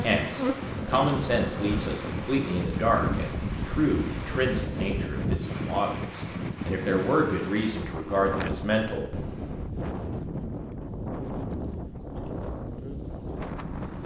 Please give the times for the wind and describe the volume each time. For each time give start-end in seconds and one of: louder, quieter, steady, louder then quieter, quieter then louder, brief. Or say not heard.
0.0-14.0 steady.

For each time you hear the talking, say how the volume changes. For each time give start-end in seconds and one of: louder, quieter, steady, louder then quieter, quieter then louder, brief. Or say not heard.
0.0-9.2 steady.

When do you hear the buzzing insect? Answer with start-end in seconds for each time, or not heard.
0.0-5.5.